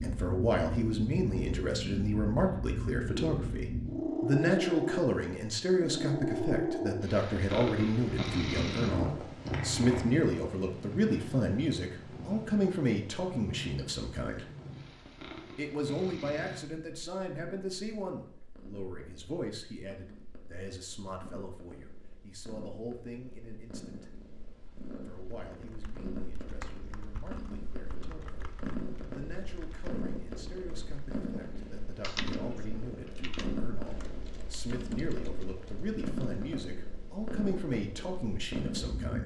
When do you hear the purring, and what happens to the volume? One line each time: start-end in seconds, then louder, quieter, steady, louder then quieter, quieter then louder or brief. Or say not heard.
0.0-39.2 quieter then louder.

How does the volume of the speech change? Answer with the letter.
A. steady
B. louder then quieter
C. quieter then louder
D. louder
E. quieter
C.